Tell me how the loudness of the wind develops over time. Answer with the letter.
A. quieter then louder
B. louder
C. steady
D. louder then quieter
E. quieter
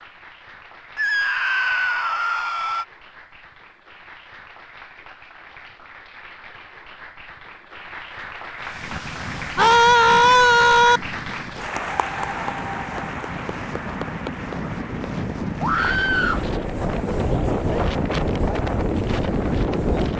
B.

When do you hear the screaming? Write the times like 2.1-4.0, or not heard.
0.9-2.9, 9.6-11.0, 15.6-16.4.